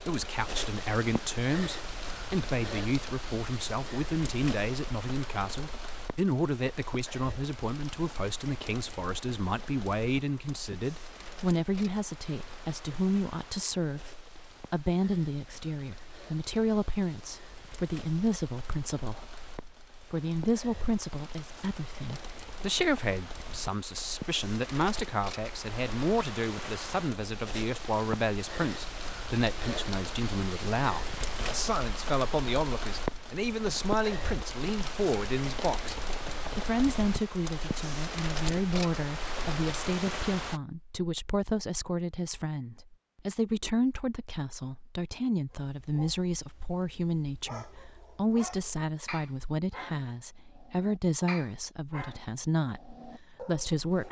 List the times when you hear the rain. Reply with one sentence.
The rain can be heard from 0.0 to 40.6 s.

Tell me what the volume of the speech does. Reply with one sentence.
The volume of the speech stays about the same.